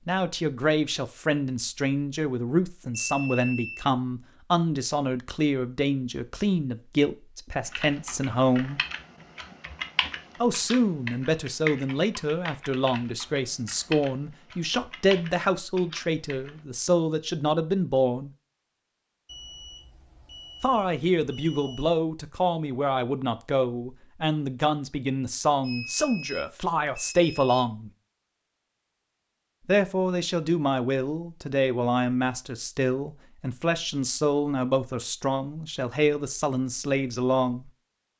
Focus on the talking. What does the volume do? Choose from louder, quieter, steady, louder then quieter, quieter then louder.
steady.